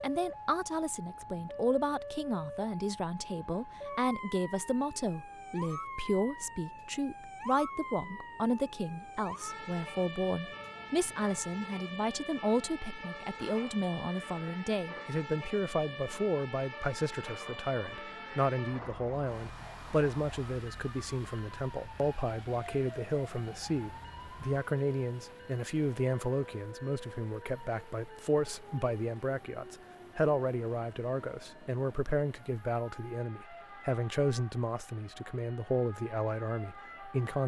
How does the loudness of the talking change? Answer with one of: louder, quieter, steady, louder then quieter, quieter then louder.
steady.